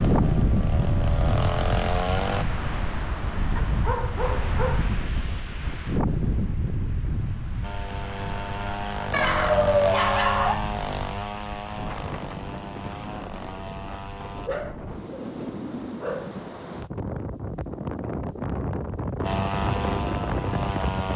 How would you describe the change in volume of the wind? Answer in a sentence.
The loudness of the wind goes down, then up.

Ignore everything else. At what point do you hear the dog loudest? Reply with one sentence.
The volume of the dog peaks at 10 seconds.